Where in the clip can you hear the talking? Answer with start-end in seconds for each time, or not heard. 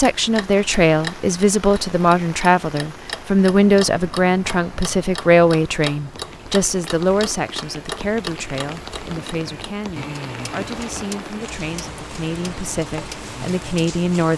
0.0-14.3.